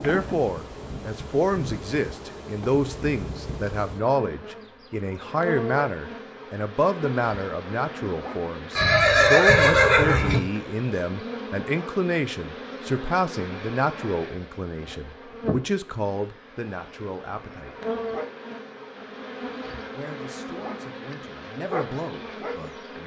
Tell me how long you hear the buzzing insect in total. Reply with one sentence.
You can hear the buzzing insect for 23 seconds altogether.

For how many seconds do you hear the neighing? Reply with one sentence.
The neighing can be heard for 2 seconds in total.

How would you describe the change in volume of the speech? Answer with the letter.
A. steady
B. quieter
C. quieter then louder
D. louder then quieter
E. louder
B.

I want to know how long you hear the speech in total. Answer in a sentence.
You can hear the speech for 21 seconds altogether.